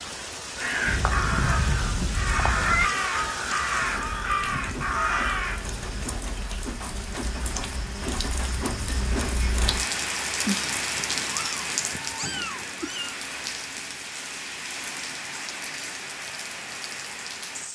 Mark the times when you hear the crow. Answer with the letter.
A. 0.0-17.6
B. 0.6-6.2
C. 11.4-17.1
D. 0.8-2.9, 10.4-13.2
B.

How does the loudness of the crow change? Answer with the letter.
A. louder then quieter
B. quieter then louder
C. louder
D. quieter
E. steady
E.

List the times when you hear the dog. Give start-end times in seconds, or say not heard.
not heard.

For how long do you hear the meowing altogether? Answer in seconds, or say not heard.
5 s.